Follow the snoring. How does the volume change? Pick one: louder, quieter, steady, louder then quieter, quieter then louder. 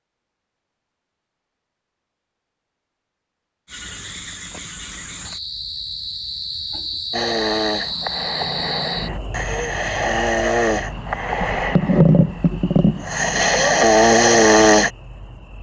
louder.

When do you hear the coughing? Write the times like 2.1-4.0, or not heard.
not heard.